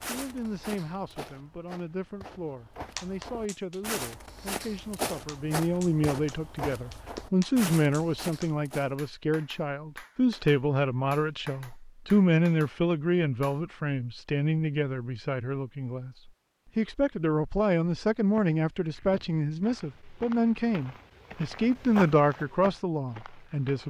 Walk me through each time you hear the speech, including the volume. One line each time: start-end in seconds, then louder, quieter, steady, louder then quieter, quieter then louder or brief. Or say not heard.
0.0-23.8 louder.